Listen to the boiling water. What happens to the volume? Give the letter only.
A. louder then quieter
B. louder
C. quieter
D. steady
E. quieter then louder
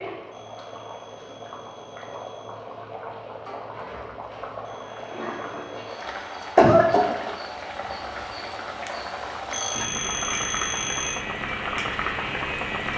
B.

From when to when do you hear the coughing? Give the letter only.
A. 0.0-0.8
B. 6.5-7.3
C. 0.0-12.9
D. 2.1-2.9
B.